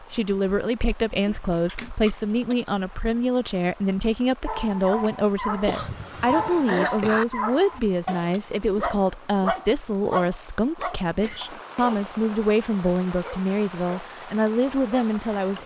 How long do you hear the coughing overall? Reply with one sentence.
The coughing can be heard for 4 seconds in total.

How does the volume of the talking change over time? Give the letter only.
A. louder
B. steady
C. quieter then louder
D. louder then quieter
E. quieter
B.